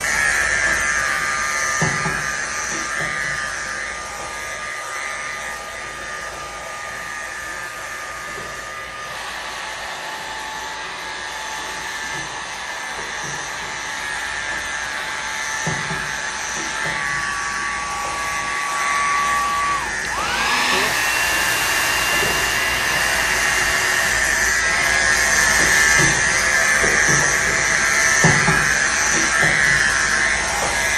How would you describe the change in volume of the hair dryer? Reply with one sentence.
The loudness of the hair dryer goes up, then down.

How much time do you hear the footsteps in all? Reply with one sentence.
The footsteps can't be heard in this clip.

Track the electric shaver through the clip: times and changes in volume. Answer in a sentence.
You can hear the electric shaver from 0.0 to 30.9 s, getting quieter then louder.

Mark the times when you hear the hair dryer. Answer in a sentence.
The hair dryer can be heard from 0.0 to 30.9 s.